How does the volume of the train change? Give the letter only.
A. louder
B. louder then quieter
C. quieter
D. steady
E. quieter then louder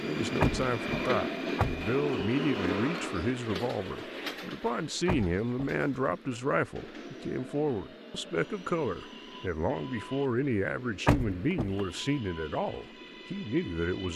C.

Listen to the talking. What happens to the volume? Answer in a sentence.
The loudness of the talking stays about the same.